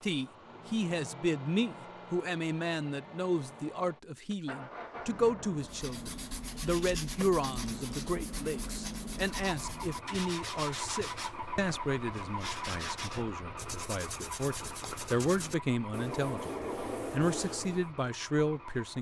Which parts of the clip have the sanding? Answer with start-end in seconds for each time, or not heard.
5.6-17.9.